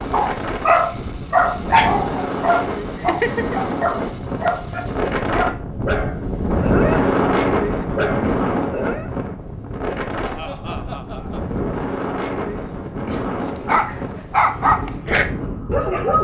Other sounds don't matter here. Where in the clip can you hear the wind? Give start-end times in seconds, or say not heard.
0.0-16.1.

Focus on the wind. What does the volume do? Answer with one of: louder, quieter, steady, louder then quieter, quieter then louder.
louder then quieter.